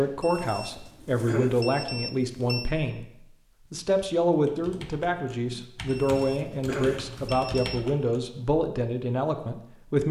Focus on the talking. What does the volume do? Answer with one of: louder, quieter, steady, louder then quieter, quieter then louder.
steady.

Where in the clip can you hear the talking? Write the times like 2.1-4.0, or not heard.
0.0-3.1, 3.7-10.0.